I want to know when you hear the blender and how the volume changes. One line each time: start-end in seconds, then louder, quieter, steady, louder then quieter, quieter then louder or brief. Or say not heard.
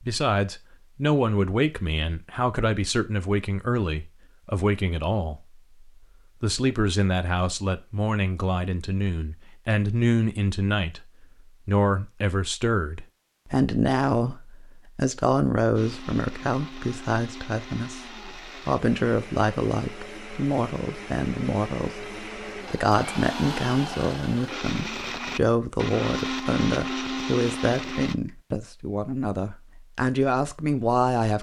15.8-28.1 louder.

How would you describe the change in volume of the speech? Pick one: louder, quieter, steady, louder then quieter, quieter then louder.
steady.